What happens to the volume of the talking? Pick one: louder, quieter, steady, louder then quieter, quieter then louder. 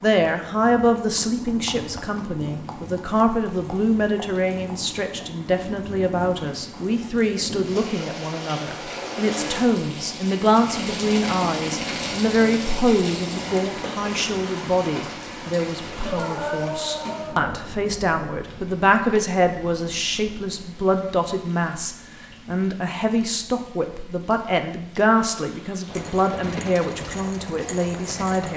steady.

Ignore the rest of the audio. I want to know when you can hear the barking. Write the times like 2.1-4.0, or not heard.
16.0-17.6.